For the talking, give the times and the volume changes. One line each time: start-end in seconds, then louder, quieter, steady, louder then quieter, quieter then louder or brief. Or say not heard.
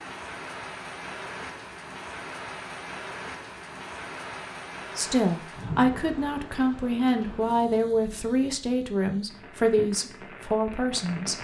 5.0-11.3 steady.